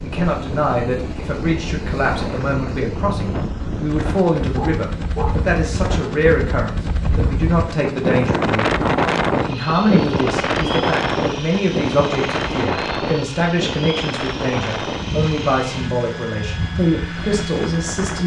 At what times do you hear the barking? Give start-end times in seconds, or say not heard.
4.5-5.4.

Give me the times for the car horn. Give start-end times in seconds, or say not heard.
not heard.